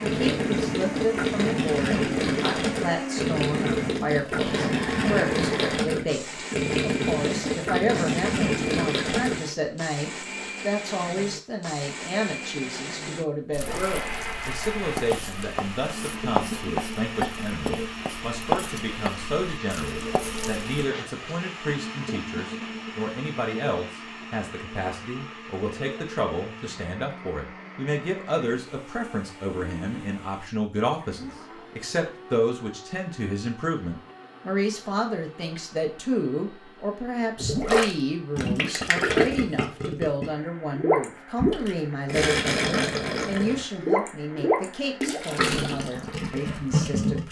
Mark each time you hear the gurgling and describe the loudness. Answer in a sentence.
The gurgling can be heard from 0.0 to 9.4 s, at a steady volume; and from 37.4 to 47.2 s, at a steady volume.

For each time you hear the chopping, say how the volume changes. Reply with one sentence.
The chopping can be heard from 13.5 to 20.8 s, getting louder then quieter.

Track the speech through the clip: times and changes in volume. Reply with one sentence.
The speech can be heard from 0.0 to 47.2 s, at a steady volume.